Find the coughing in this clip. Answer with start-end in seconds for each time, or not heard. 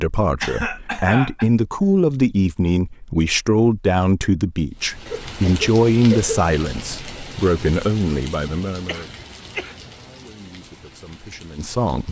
0.4-1.4, 5.0-6.5, 8.8-9.8.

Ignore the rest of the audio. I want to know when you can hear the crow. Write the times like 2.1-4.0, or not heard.
not heard.